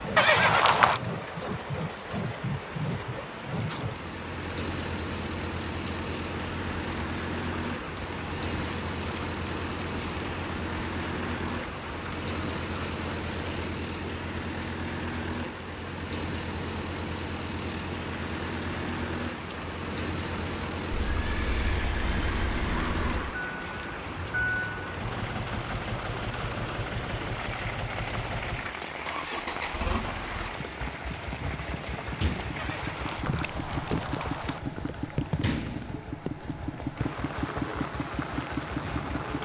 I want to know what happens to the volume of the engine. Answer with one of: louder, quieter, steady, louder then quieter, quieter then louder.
steady.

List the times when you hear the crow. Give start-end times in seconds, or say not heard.
not heard.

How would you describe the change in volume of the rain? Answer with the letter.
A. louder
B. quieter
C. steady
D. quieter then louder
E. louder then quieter
C.